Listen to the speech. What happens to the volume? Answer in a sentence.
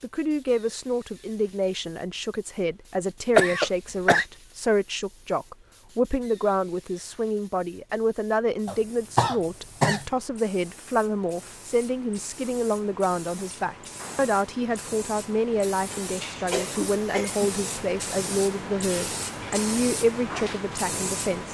The volume of the speech stays about the same.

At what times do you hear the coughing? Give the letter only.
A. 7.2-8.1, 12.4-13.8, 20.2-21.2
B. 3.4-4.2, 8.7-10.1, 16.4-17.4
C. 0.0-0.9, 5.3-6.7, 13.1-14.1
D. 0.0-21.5
B.